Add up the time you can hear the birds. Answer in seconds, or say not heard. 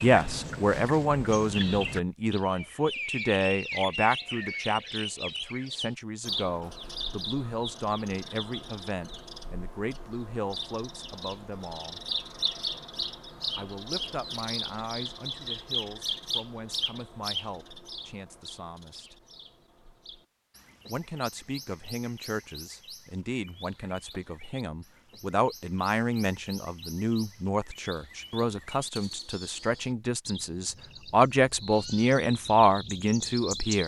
34 s.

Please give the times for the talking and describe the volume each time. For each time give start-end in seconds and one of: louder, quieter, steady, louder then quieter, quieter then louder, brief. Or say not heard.
0.0-12.0 quieter
13.6-19.1 quieter
20.9-33.8 louder.